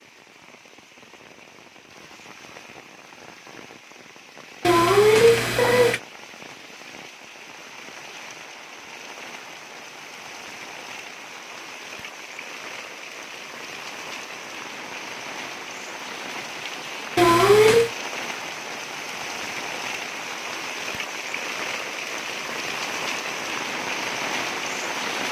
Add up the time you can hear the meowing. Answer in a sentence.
You can hear the meowing for 2 seconds altogether.